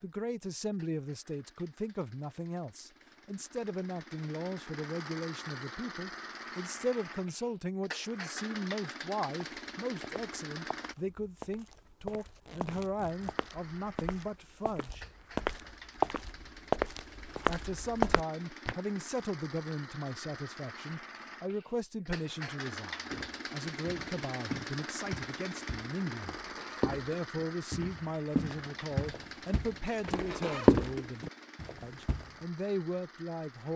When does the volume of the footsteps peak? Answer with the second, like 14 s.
31 s.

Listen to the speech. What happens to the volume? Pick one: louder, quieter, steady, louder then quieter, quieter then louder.
steady.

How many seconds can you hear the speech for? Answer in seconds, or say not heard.
31 s.